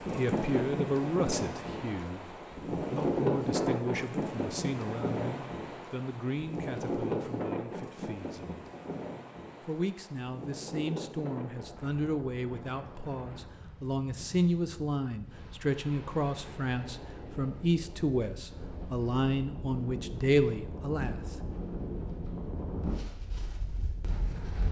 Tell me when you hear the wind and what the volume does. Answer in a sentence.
You can hear the wind from 0.0 to 24.6 s, getting quieter then louder.